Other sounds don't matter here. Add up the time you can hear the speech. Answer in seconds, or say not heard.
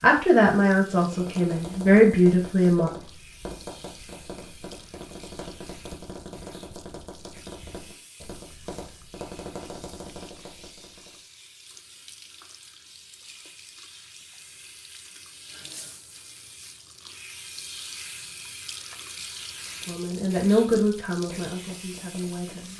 6 s.